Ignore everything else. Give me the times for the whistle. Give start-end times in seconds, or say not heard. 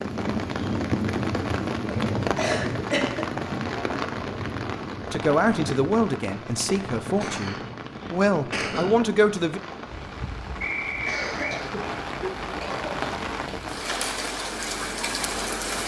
10.6-11.6.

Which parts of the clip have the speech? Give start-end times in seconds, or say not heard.
5.1-9.6.